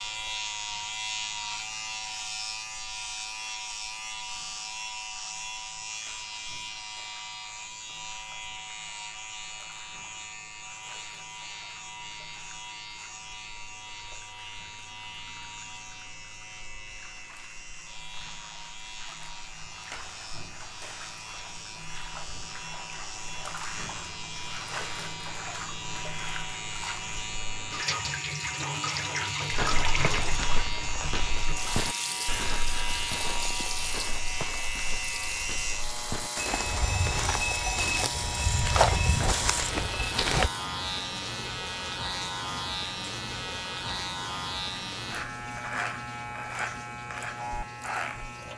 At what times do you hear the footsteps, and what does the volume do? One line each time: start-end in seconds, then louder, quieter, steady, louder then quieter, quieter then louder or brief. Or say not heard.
29.5-40.5 quieter then louder.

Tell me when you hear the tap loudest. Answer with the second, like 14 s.
30 s.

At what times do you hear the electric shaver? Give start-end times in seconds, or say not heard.
0.0-48.5.